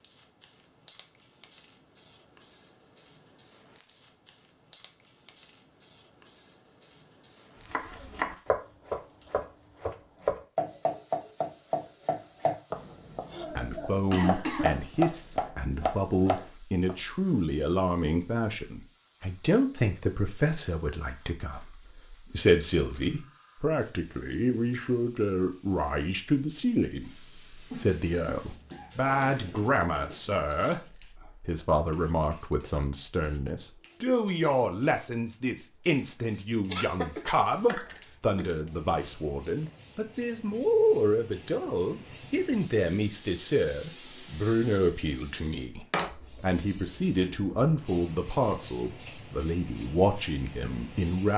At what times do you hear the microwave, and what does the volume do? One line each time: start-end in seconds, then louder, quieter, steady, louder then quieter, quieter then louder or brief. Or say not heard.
not heard.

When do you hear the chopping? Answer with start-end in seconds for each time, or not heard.
7.7-16.9.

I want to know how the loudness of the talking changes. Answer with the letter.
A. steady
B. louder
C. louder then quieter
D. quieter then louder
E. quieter
A.